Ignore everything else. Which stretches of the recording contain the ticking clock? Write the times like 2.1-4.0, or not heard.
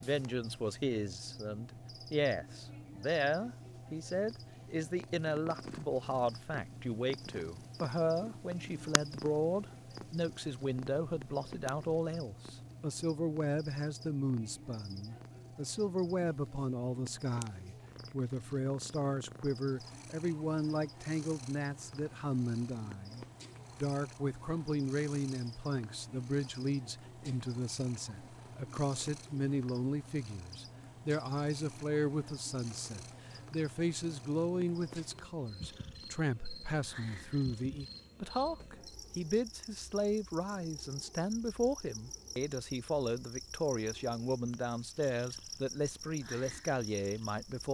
not heard.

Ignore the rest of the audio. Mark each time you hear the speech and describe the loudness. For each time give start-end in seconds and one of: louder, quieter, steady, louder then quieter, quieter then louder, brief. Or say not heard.
0.0-47.7 steady.